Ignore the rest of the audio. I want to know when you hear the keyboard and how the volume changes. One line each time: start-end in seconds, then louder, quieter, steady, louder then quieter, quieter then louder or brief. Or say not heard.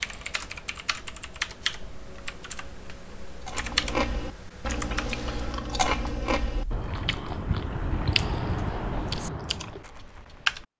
0.0-10.7 quieter then louder.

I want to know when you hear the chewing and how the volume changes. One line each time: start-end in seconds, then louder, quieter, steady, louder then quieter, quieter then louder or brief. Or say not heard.
3.5-9.8 steady.